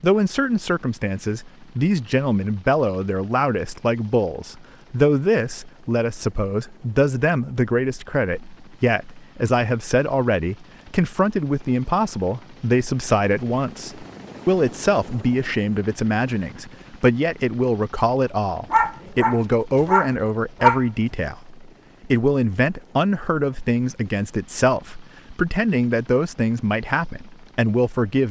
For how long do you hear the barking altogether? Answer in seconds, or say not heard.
2 s.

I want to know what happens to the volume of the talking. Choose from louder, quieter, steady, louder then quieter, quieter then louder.
steady.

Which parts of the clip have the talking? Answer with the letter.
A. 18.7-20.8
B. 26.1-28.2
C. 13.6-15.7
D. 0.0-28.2
D.